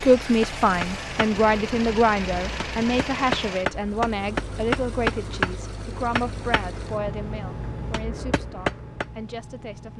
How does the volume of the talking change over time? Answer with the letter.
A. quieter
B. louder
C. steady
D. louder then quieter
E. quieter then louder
A.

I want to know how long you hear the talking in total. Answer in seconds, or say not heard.
10 s.